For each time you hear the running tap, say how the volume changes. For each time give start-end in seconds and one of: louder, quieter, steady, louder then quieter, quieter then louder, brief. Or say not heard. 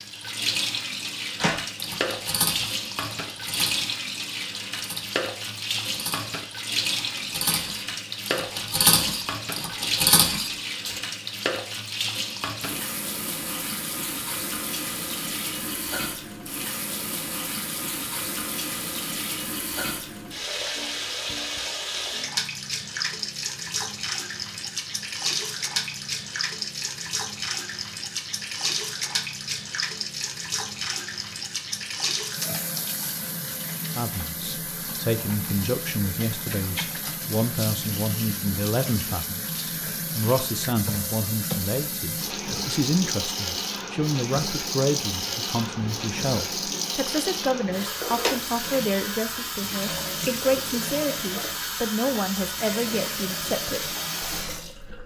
0.0-55.0 steady.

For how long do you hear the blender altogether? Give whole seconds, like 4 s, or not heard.
not heard.